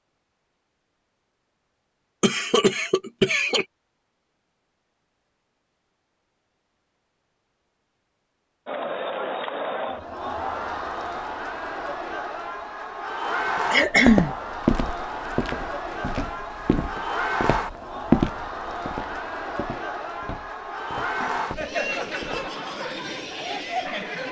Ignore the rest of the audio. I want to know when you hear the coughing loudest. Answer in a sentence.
The volume of the coughing peaks at 14 seconds.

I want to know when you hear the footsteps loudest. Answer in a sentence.
The loudest moment of the footsteps is at 18 seconds.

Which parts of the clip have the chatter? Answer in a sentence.
You can hear the chatter from 8.7 to 24.2 s.